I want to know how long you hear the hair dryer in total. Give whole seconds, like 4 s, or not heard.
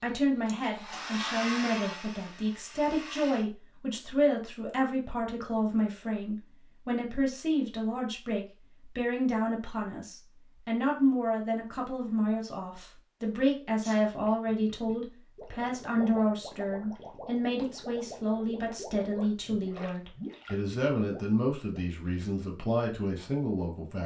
3 s.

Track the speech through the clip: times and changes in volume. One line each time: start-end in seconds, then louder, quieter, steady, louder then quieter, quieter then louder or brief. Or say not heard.
0.0-24.0 steady.